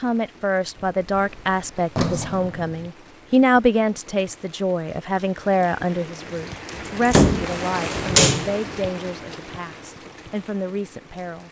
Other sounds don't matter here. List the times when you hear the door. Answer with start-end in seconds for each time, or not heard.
0.8-2.9, 6.8-8.5.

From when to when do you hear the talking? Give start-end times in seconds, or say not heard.
0.0-11.4.